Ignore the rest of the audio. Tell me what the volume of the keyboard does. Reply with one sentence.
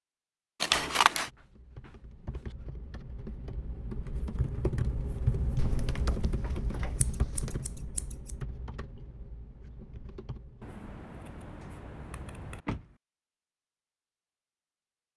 The volume of the keyboard goes up, then down.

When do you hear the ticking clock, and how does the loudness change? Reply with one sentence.
The ticking clock can't be heard in this clip.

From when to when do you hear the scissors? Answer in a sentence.
The scissors can be heard from 0.6 to 1.3 s, from 7.0 to 8.3 s and from 10.6 to 12.7 s.